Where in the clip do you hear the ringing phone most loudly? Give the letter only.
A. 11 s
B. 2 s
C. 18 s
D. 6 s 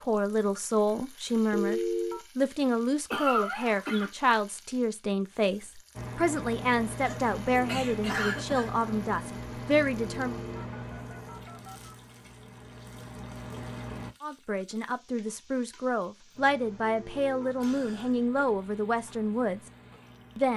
B.